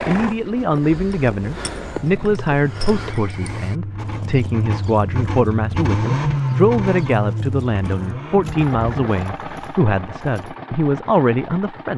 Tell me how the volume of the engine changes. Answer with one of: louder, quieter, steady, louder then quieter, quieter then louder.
louder then quieter.